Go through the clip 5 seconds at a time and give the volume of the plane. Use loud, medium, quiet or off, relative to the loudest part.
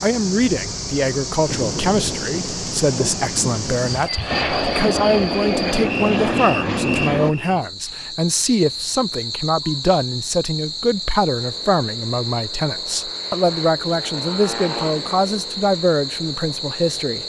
medium, loud, quiet, quiet.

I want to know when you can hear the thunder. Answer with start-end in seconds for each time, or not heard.
1.4-4.1.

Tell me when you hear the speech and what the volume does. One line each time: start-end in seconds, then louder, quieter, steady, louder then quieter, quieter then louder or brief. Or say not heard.
0.0-17.2 steady.